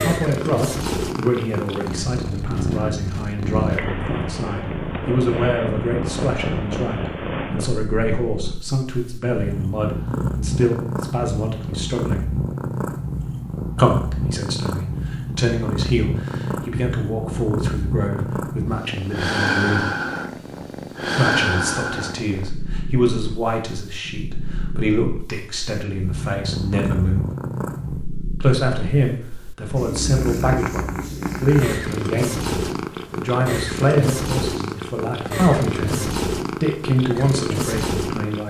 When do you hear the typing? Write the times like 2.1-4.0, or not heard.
not heard.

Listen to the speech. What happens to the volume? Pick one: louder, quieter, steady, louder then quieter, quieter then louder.
steady.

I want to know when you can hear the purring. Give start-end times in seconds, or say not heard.
0.0-38.4.